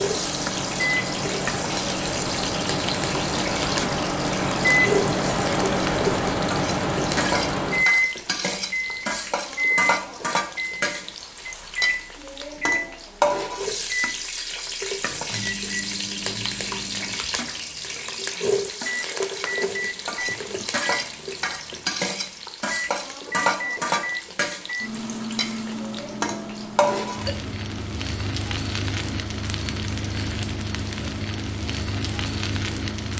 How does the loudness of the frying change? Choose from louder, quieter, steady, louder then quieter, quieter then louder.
steady.